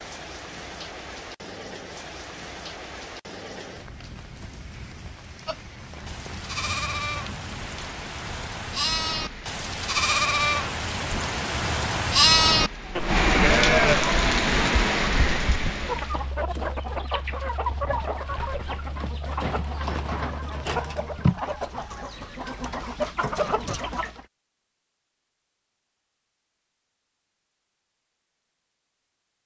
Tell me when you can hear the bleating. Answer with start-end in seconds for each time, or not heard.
5.5-15.4.